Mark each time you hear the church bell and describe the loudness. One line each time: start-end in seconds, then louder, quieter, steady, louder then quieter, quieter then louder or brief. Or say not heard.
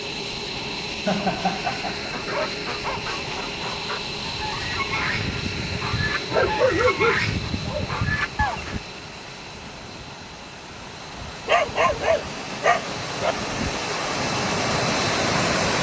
not heard.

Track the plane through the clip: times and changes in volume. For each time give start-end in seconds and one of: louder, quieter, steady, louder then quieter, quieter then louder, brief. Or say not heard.
0.0-15.7 quieter then louder.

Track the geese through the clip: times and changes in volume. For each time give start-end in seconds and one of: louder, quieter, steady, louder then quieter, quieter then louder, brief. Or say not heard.
2.1-8.8 louder.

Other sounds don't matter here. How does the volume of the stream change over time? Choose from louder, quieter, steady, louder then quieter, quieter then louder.
louder.